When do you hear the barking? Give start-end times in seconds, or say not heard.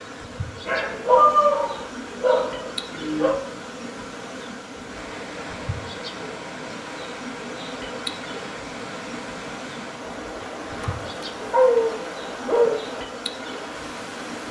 0.7-3.4, 10.6-12.8.